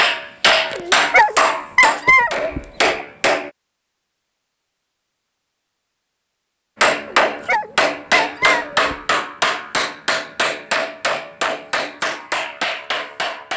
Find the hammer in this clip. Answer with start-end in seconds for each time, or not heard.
0.0-3.5, 6.8-13.5.